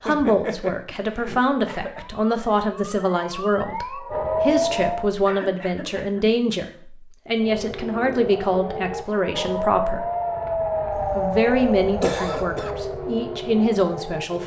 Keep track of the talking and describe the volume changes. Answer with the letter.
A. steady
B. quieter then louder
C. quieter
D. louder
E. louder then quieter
A.